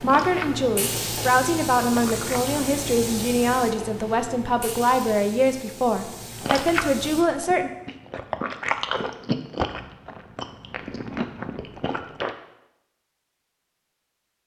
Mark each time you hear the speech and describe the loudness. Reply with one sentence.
You can hear the speech from 0.0 to 7.7 s, at a steady volume.